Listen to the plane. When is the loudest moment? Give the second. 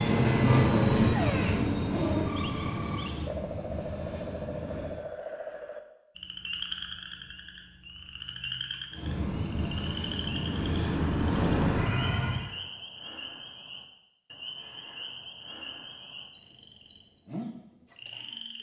1 s.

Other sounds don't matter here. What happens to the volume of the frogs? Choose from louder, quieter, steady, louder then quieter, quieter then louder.
quieter.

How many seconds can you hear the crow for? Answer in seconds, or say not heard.
not heard.